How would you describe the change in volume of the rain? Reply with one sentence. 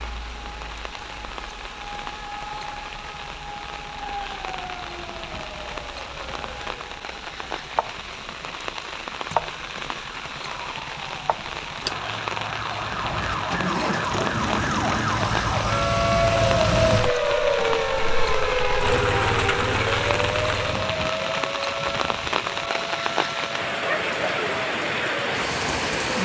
The loudness of the rain goes up.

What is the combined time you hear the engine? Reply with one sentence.
The engine can be heard for 8 seconds in total.